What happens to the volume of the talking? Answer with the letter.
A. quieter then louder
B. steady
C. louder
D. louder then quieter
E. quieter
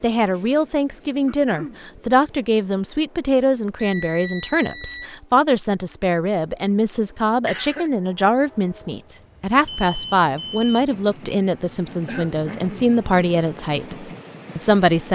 B.